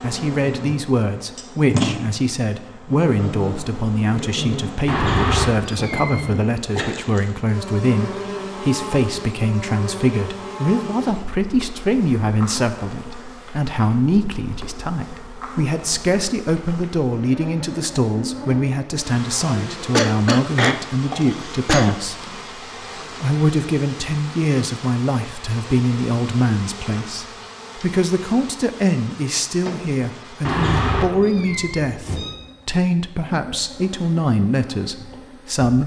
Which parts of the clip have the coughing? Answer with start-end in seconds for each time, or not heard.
19.4-21.9.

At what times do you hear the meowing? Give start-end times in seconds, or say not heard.
4.8-6.4, 30.4-32.4.